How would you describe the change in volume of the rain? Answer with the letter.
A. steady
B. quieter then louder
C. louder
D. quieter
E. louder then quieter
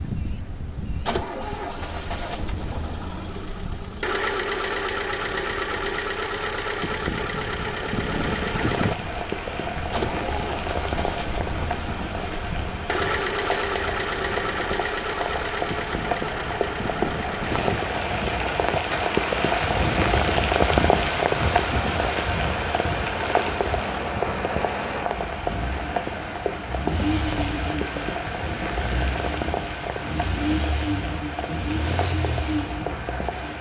E.